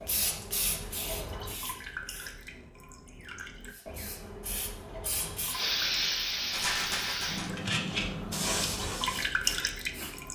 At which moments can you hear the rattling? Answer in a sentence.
You can hear the rattling from 6.5 to 7.5 s.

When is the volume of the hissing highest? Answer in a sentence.
The volume of the hissing peaks at 6 seconds.